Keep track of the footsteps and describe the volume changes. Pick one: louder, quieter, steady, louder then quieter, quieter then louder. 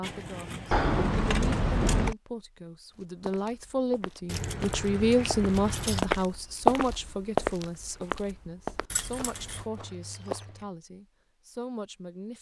louder then quieter.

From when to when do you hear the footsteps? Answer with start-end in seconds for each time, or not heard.
3.0-10.4.